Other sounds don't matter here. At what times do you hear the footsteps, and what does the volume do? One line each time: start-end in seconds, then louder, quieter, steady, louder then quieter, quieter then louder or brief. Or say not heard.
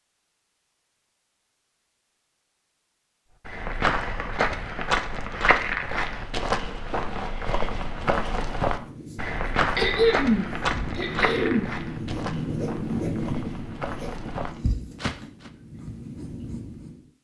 3.5-15.5 quieter.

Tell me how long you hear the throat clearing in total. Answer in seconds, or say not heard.
2 s.